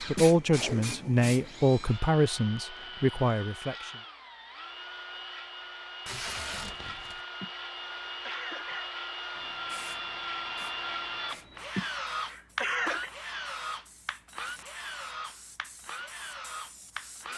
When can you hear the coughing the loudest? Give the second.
13 s.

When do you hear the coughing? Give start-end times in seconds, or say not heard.
0.1-0.8, 7.4-8.9, 11.8-13.1.